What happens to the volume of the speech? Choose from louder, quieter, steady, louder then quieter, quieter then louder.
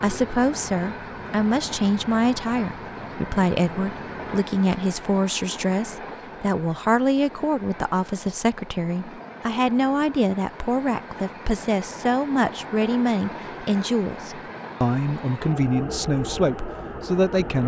steady.